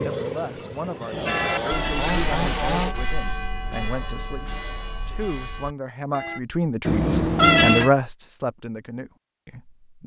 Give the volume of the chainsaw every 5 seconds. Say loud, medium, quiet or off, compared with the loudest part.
loud, off.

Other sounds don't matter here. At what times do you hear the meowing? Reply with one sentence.
The meowing can be heard from 1.1 to 2.9 s and from 6.8 to 7.9 s.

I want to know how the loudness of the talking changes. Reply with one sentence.
The volume of the talking goes up.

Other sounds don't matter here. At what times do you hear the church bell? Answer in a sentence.
The church bell can be heard from 1.2 to 6.4 s.